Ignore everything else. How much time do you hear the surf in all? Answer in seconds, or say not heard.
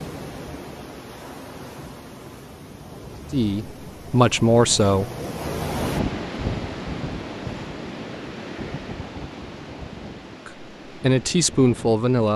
12 s.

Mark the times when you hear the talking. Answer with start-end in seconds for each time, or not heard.
3.3-5.0, 10.4-12.3.